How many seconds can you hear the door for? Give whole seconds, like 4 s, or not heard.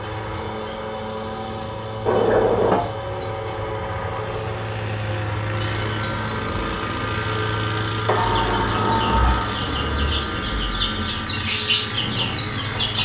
2 s.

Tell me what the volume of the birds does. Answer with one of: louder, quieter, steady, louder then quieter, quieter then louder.
louder.